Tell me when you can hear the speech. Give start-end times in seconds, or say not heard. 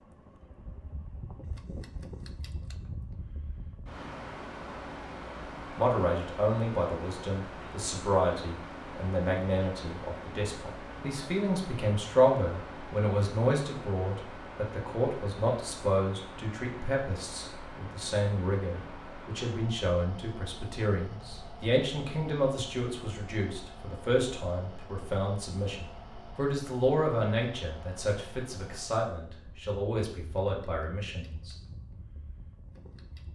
5.8-31.6.